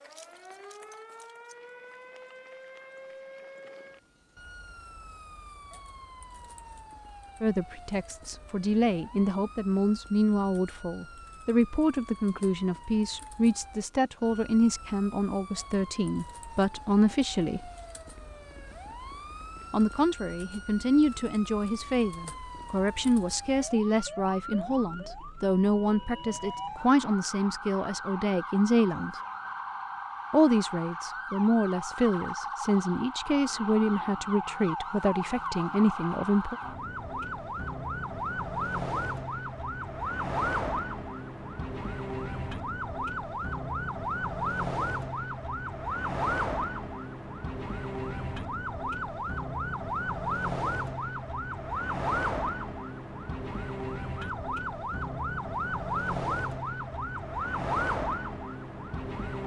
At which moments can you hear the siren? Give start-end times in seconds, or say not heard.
0.0-59.4.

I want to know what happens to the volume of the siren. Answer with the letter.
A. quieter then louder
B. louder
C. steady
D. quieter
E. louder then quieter
B.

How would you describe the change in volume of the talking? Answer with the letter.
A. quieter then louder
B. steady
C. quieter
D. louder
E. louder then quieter
B.